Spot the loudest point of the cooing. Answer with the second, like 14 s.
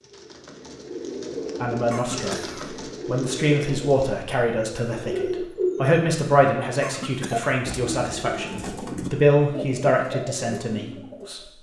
6 s.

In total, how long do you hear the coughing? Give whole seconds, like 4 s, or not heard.
2 s.